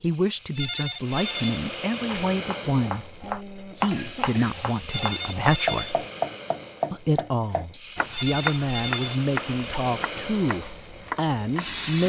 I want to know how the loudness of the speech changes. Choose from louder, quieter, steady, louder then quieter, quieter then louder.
steady.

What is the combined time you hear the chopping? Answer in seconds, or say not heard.
10 s.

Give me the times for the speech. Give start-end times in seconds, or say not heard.
0.0-6.0, 6.9-12.0.